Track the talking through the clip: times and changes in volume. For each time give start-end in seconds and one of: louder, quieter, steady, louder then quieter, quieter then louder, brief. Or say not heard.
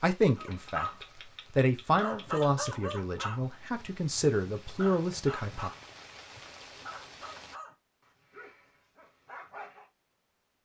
0.0-0.8 brief
1.5-5.7 quieter then louder.